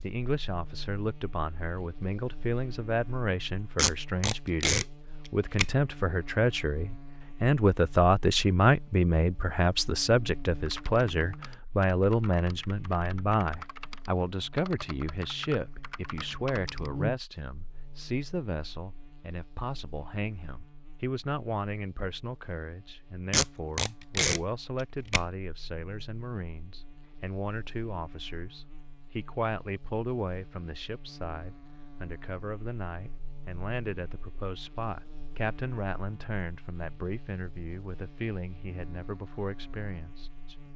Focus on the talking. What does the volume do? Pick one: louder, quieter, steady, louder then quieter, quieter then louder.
quieter.